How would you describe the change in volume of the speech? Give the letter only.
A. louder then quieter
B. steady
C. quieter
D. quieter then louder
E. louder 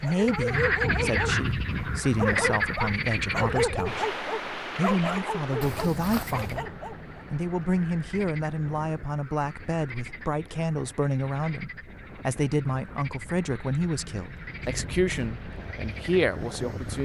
B.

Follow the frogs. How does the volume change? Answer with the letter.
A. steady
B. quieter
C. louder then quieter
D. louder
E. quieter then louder
B.